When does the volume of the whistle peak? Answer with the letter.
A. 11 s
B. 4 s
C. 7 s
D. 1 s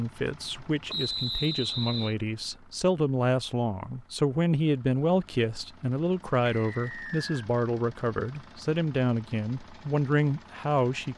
D.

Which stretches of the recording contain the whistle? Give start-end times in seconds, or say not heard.
0.8-2.1, 6.5-7.5.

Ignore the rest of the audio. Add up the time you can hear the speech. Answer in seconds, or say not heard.
11 s.